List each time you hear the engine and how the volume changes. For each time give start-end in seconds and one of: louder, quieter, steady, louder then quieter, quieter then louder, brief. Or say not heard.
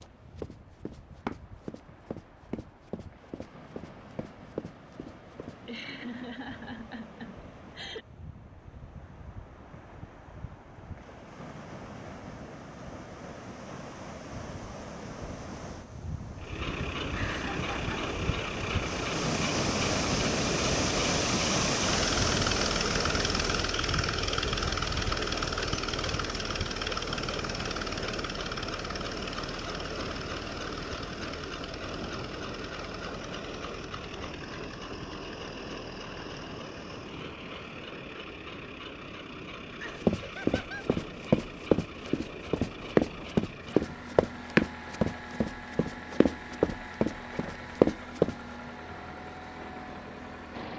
16.4-50.7 quieter.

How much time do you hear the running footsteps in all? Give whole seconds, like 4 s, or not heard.
14 s.